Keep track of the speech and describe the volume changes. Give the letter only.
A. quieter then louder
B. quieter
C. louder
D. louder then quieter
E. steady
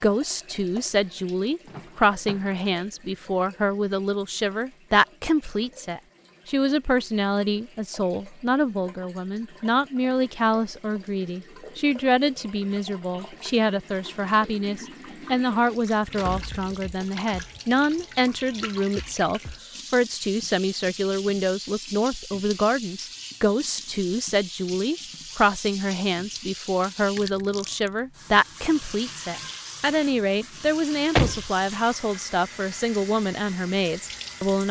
E.